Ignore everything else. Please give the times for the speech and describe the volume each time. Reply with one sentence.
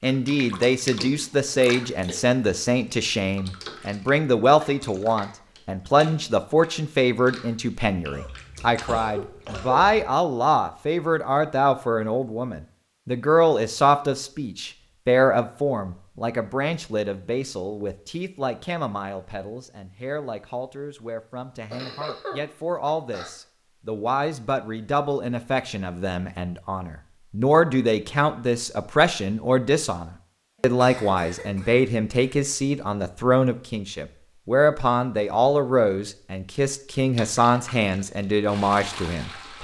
You can hear the speech from 0.0 to 39.5 s, getting quieter then louder.